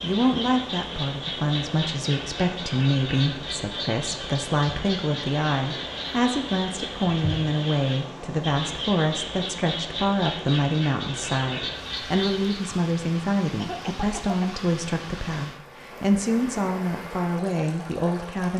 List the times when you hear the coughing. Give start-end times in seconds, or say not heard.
13.6-14.4.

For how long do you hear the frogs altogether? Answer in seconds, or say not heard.
13 s.